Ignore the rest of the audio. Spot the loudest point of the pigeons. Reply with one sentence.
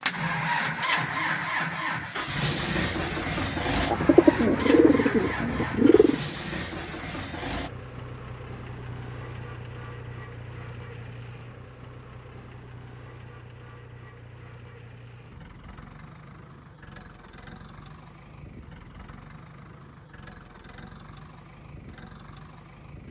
The loudest moment of the pigeons is at 4 seconds.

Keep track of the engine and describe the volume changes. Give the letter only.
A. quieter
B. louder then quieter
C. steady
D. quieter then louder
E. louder
A.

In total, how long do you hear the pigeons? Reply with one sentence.
You can hear the pigeons for 2 seconds altogether.